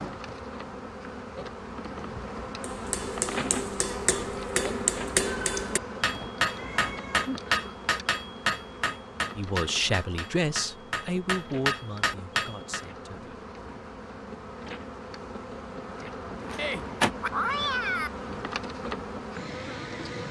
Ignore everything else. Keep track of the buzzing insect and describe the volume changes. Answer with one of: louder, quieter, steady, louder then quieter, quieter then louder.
quieter then louder.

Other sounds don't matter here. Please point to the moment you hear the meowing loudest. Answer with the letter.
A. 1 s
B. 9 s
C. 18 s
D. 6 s
C.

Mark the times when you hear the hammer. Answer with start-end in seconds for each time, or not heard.
2.6-12.8.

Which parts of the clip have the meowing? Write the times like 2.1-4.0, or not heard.
5.3-7.3, 16.6-18.1.